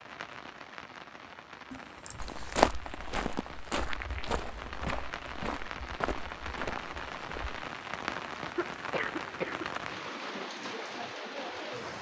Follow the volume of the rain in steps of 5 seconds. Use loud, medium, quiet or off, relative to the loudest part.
medium, loud, loud.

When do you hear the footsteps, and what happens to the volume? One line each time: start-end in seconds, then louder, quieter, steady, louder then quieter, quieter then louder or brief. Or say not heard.
2.1-7.5 quieter.